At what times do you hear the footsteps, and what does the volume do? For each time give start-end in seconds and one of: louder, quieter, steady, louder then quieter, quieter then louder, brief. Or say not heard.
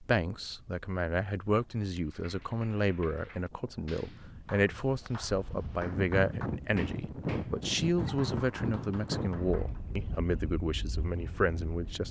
not heard.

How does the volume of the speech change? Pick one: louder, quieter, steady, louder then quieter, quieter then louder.
steady.